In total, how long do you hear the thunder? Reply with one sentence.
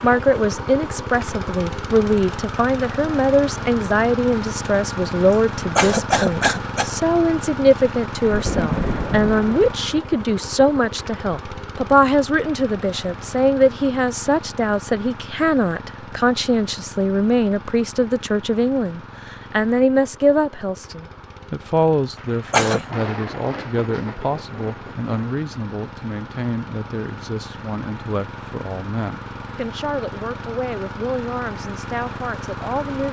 The thunder can be heard for 5 seconds in total.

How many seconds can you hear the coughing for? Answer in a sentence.
You can hear the coughing for 2 seconds altogether.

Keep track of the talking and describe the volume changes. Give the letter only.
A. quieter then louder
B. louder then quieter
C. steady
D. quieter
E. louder
D.